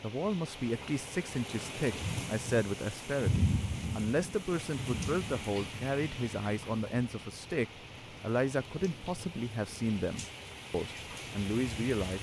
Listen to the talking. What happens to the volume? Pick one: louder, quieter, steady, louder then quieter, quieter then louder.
steady.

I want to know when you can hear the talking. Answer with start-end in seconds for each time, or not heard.
0.0-12.1.